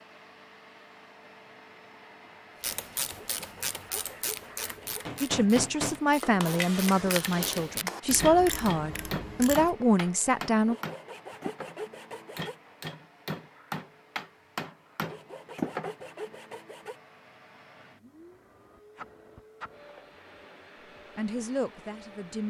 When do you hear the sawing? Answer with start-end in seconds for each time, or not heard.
3.1-5.0, 10.7-12.6, 15.1-17.0.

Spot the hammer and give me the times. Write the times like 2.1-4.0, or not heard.
4.8-15.9.